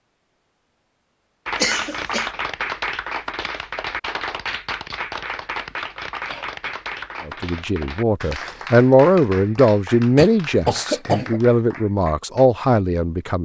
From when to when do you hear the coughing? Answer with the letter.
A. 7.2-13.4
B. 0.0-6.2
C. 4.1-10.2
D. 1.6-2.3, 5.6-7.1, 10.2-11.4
D.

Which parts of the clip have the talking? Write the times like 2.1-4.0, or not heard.
7.2-13.4.